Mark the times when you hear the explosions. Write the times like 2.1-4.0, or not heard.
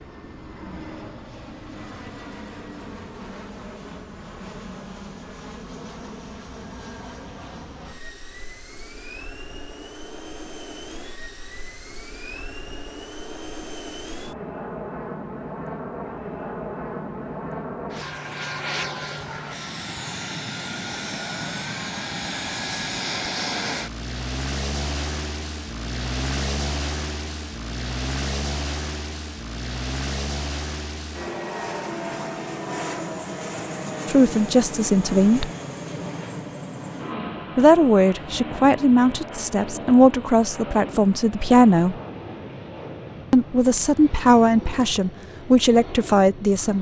not heard.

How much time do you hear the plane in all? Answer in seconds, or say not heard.
47 s.